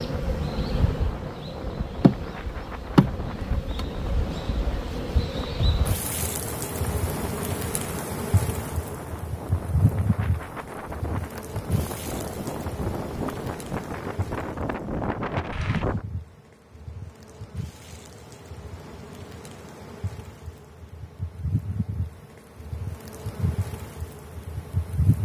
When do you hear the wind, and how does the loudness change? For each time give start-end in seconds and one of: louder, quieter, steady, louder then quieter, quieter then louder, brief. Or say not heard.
0.0-16.1 louder.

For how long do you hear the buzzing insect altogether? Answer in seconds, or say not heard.
25 s.